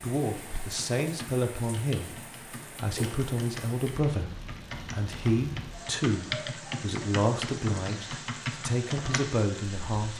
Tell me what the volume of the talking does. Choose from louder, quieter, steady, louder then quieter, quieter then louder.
steady.